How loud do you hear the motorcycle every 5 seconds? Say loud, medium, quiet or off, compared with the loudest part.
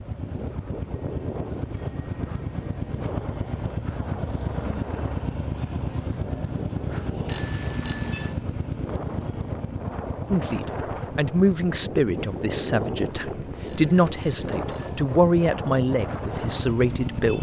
loud, loud, medium, loud.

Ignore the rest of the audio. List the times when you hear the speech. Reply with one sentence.
The speech can be heard from 10.3 to 17.3 s.